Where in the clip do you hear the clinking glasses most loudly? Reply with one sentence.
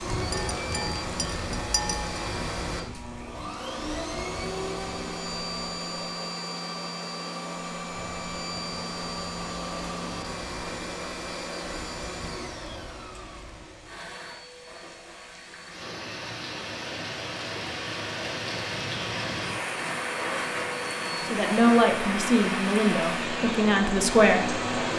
The volume of the clinking glasses peaks at 2 seconds.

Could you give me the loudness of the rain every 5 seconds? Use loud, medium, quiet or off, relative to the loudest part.
medium, quiet, quiet, loud, loud.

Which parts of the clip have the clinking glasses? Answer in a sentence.
The clinking glasses can be heard from 0.3 to 2.2 s.